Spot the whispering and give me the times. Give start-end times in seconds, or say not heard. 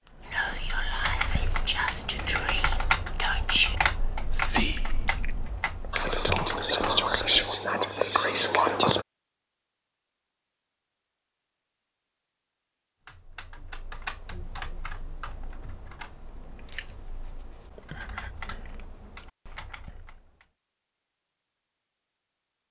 0.2-9.1.